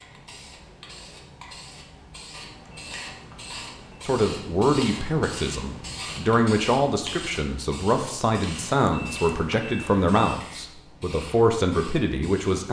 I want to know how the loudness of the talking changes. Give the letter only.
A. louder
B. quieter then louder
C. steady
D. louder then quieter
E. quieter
C.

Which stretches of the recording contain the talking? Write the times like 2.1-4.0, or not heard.
4.0-12.6.